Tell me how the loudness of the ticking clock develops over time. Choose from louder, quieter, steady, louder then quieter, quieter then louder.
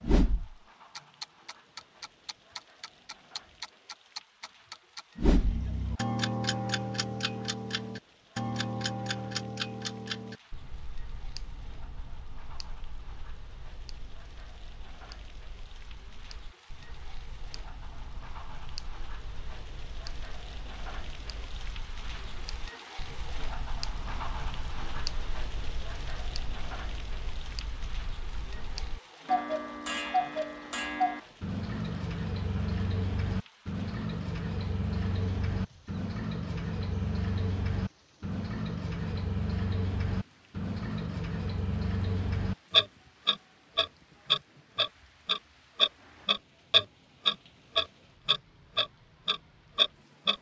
quieter then louder.